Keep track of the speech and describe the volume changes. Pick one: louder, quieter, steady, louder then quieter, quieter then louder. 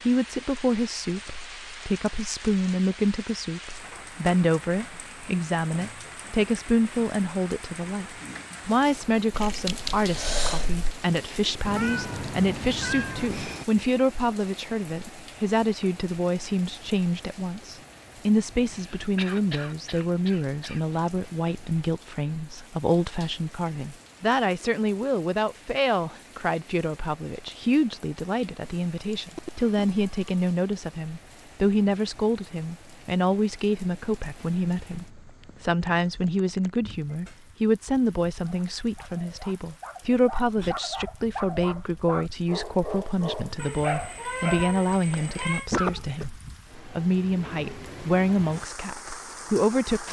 steady.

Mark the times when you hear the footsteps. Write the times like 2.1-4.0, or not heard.
not heard.